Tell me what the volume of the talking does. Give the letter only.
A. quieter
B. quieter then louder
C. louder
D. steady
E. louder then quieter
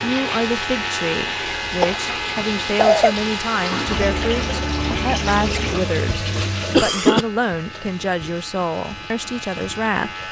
D.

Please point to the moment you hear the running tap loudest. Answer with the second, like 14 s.
5 s.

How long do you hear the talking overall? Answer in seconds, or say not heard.
10 s.